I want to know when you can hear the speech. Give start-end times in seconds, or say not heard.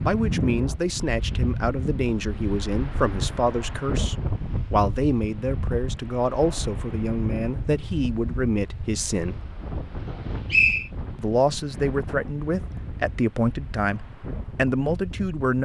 0.0-9.4, 11.2-15.6.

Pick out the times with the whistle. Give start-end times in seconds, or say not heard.
10.5-10.9.